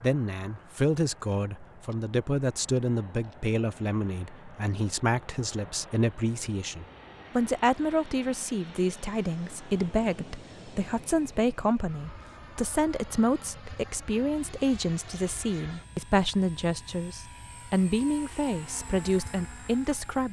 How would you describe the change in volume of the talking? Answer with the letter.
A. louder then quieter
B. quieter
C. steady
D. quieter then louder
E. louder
C.